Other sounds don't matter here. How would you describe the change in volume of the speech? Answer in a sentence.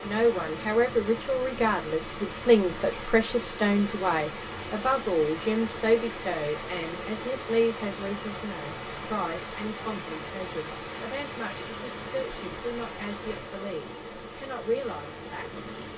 The volume of the speech goes down.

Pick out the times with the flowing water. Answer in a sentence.
The flowing water can be heard from 0.0 to 15.9 s.